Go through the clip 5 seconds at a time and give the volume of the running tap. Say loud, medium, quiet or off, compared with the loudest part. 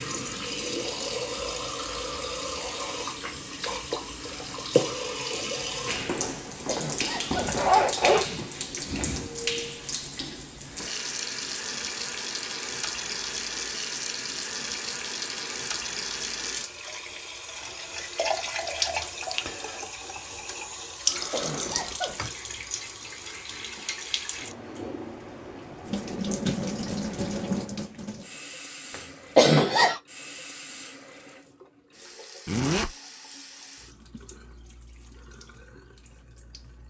loud, loud, loud, loud, loud, loud, quiet, quiet.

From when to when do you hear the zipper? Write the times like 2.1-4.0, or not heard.
7.3-9.3, 21.4-22.3, 32.5-32.9.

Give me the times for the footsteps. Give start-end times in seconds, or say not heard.
not heard.